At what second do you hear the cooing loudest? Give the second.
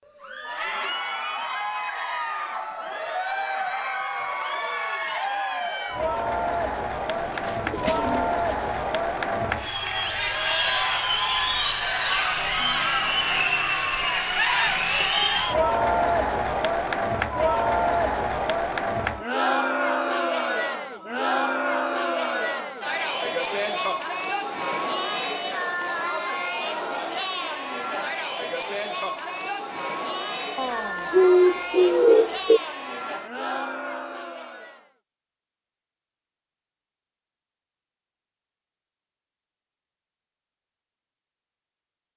31 s.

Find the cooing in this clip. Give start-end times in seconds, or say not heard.
7.2-8.8, 30.6-32.6.